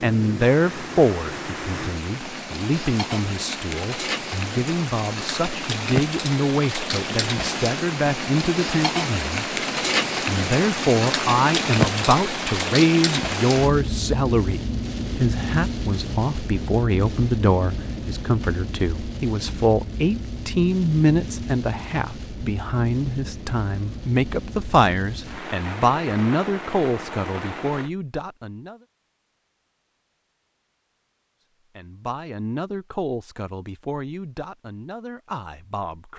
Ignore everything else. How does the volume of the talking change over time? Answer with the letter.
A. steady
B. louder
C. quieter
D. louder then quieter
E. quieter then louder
C.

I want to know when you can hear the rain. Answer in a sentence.
The rain can be heard from 0.0 to 27.9 s.